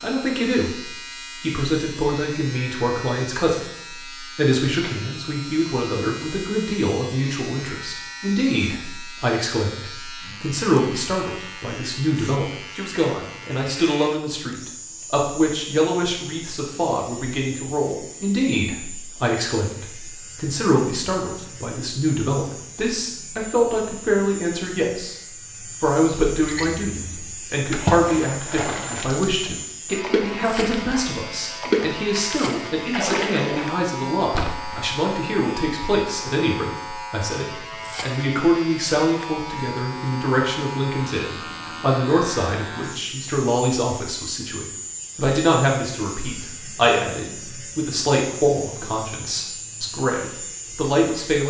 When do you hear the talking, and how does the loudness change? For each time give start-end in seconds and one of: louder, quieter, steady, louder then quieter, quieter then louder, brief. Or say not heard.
0.0-51.4 steady.